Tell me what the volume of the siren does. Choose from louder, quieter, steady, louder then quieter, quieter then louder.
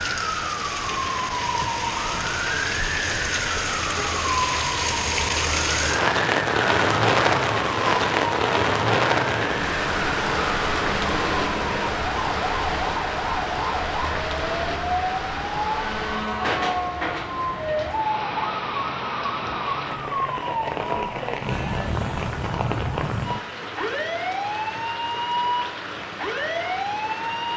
steady.